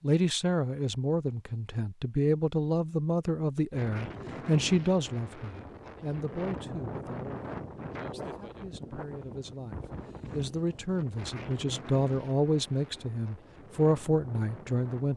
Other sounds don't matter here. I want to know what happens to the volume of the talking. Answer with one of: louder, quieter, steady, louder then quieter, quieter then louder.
quieter then louder.